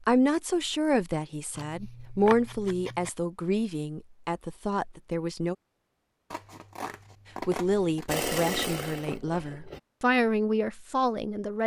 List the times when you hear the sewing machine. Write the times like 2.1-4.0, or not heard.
8.1-9.8.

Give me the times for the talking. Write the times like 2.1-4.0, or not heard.
0.1-5.5, 7.5-11.6.